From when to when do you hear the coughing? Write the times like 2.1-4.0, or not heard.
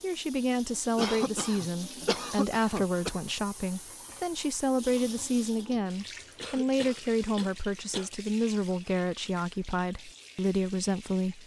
0.9-3.3, 6.3-8.1.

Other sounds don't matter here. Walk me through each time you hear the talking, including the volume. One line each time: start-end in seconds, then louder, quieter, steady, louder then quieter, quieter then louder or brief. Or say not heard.
0.0-11.4 steady.